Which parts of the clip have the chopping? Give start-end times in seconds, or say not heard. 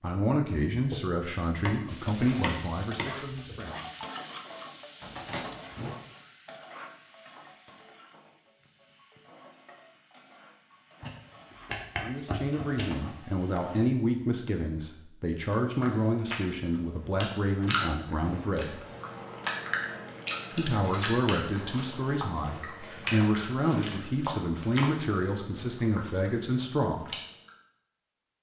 0.9-3.8, 11.0-12.9, 23.2-24.9.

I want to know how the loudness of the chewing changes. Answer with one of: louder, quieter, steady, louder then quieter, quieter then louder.
quieter.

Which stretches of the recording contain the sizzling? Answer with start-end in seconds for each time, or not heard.
1.9-13.9.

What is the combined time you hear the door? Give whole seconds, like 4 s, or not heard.
2 s.